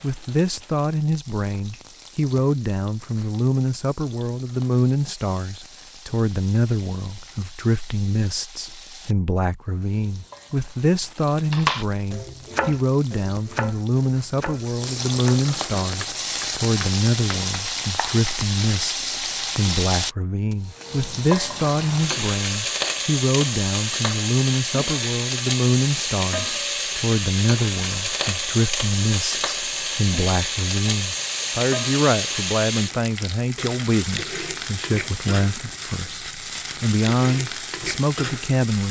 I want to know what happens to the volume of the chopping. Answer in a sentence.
The loudness of the chopping goes down.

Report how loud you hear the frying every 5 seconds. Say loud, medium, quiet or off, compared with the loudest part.
quiet, quiet, quiet, loud, loud, loud, loud, medium.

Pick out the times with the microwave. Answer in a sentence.
You can't hear the microwave here.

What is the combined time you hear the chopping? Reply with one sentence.
The chopping can be heard for 7 seconds in total.